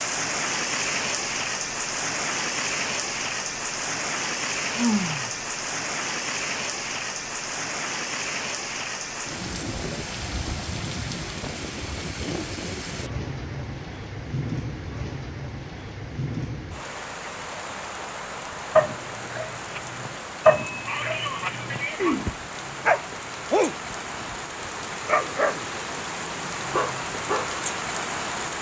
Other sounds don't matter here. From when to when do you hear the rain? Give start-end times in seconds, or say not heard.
0.0-28.5.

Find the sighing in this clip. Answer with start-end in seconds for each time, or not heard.
4.8-5.3, 20.6-22.3.